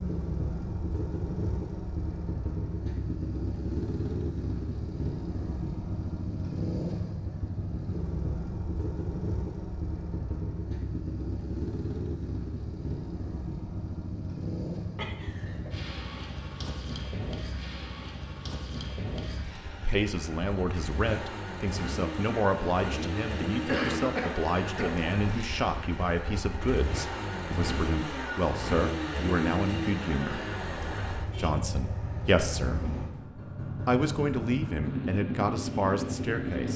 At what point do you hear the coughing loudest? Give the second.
24 s.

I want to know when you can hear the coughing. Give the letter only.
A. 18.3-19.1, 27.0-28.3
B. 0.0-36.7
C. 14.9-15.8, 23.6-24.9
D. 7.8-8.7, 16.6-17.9
C.